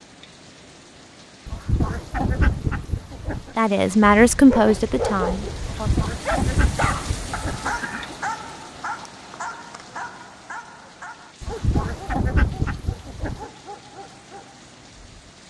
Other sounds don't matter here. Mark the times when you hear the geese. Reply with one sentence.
The geese can be heard from 1.4 to 3.5 s, from 5.7 to 8.2 s and from 11.4 to 13.4 s.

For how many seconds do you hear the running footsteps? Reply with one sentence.
The running footsteps can't be heard in this clip.